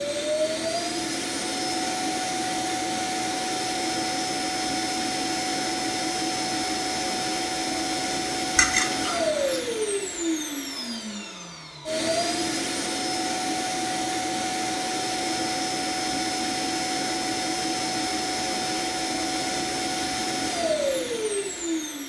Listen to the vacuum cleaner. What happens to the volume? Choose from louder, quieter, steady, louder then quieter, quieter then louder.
steady.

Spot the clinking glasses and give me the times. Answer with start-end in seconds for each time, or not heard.
8.6-9.7.